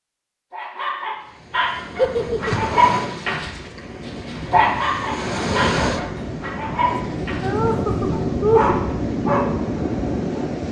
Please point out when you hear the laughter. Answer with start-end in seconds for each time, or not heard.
1.9-2.8, 6.9-8.8.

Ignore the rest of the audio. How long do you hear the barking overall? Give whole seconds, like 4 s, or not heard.
9 s.